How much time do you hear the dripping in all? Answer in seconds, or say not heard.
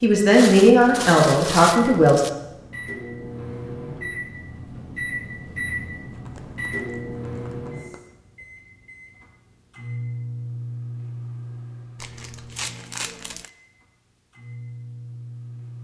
not heard.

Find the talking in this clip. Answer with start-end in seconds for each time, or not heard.
0.0-2.2.